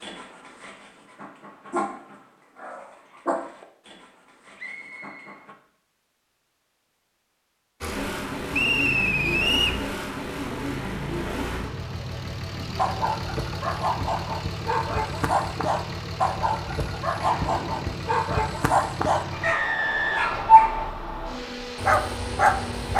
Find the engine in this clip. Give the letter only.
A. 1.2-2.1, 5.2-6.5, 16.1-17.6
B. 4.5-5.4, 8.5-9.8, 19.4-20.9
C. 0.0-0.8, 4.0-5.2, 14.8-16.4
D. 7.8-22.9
D.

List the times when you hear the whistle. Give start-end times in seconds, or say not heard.
4.5-5.4, 8.5-9.8, 19.4-20.9.